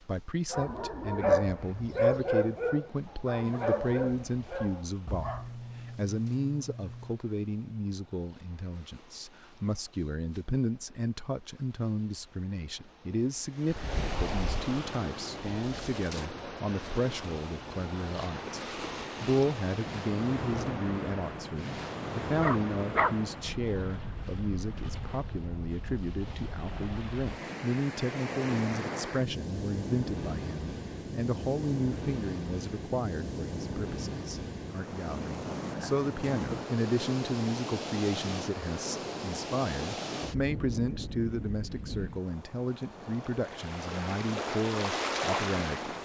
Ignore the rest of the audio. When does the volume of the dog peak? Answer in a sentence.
The loudest moment of the dog is at 1 second.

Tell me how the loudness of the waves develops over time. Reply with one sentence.
The loudness of the waves goes up.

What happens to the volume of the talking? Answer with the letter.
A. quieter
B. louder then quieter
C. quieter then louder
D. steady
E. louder
D.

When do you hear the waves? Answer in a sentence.
The waves can be heard from 0.0 to 46.0 s.